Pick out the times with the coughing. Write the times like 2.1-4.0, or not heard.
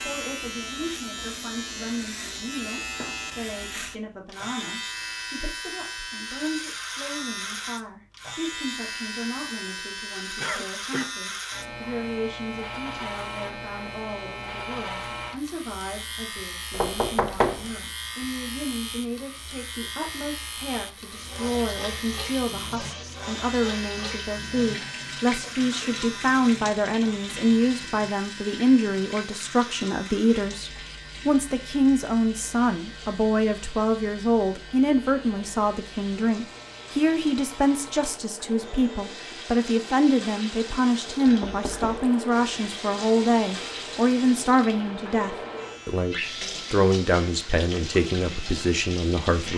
10.3-11.1.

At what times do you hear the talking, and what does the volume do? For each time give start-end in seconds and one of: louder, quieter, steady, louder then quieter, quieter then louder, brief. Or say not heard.
0.0-49.5 louder.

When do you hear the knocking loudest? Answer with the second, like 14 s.
17 s.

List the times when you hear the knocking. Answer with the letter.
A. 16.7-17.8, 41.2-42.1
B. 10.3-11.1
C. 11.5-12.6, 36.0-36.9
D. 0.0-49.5
A.